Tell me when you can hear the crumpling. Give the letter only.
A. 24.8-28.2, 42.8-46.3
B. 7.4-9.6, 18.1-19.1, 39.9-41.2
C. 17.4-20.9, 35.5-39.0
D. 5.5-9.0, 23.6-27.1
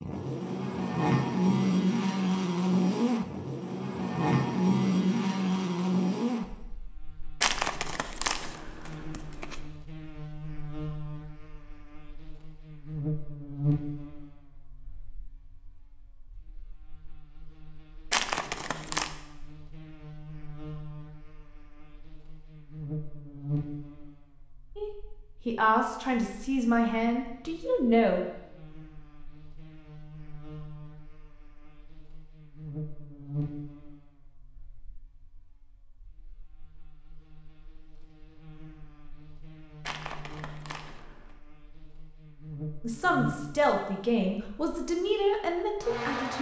B.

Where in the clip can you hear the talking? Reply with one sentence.
You can hear the talking from 24.8 to 28.2 s and from 42.8 to 46.3 s.